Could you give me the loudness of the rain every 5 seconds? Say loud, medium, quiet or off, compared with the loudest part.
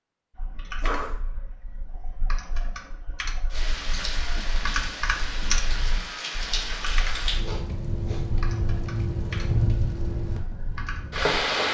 medium, loud, loud.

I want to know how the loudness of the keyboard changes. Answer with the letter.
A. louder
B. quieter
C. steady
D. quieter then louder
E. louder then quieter
E.